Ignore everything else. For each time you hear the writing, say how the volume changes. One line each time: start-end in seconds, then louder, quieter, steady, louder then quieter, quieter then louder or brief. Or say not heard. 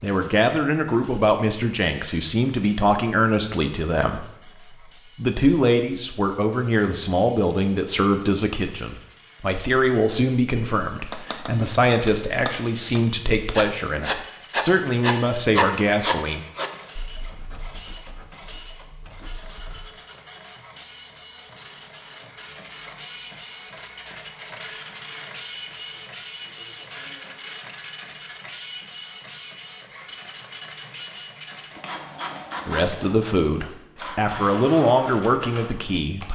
11.1-19.9 louder then quieter.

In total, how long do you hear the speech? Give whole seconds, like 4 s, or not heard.
20 s.